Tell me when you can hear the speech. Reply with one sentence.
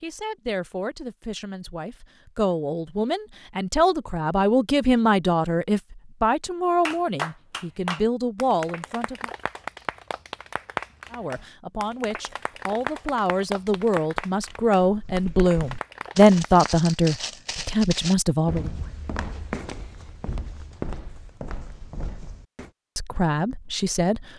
You can hear the speech from 0.0 to 9.3 s, from 11.1 to 18.7 s and from 22.9 to 24.2 s.